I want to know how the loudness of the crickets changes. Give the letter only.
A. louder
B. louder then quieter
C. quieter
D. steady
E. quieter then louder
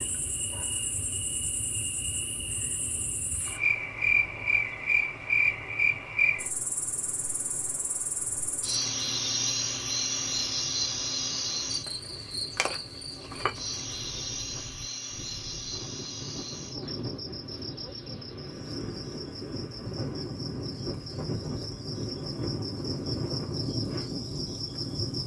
C.